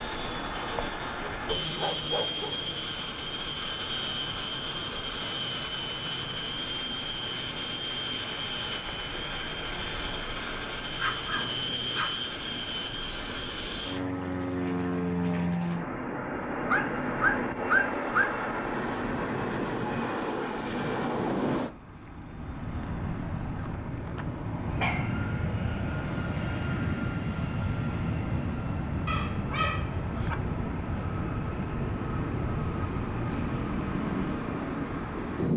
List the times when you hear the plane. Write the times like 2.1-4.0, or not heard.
0.0-35.5.